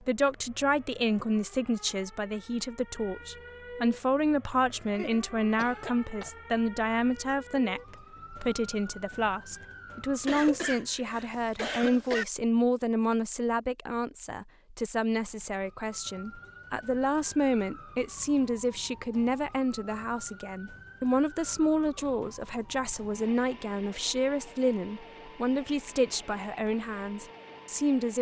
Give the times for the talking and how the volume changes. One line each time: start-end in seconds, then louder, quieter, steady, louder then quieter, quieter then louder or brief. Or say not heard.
0.1-28.1 steady.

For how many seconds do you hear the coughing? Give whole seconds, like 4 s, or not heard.
4 s.